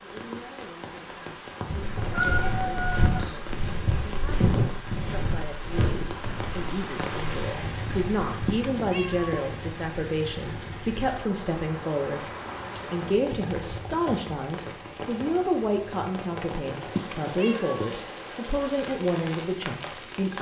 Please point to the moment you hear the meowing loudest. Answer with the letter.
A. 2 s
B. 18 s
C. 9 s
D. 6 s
A.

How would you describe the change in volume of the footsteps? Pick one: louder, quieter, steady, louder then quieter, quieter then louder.
quieter.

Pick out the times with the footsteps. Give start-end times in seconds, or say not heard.
1.8-8.6.